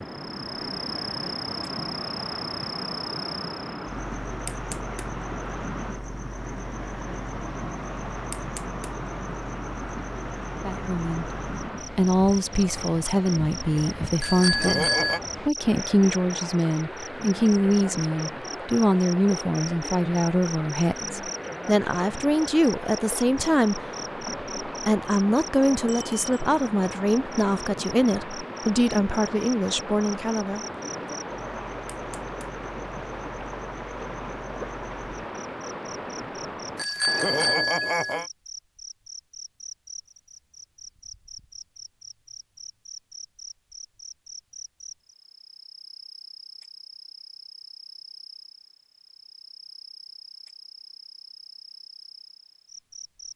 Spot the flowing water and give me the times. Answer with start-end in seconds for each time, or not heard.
0.0-37.6.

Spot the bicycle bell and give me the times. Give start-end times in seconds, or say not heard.
14.2-15.2, 25.9-26.4, 36.8-38.2.